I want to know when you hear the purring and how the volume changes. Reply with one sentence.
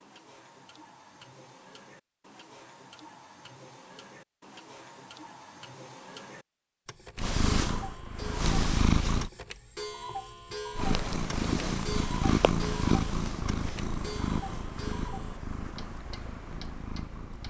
The purring can be heard briefly from 7.2 to 9.3 s; and from 10.8 to 17.4 s, getting quieter.